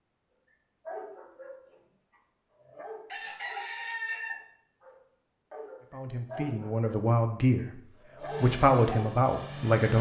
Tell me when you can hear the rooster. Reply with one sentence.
The rooster can be heard from 3.1 to 4.4 s.